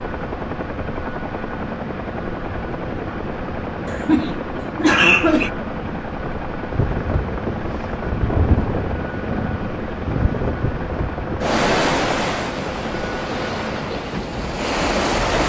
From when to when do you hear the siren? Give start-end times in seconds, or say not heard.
not heard.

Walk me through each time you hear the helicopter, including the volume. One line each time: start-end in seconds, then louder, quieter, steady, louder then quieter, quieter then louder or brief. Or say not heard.
0.0-15.4 steady.